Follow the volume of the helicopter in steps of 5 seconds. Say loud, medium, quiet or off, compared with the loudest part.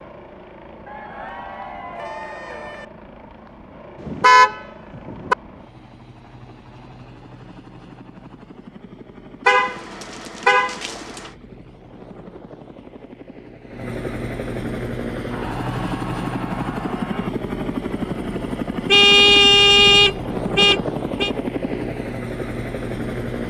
quiet, quiet, medium, loud, loud.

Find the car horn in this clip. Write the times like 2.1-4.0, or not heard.
4.0-5.3, 9.4-11.3, 18.9-21.3.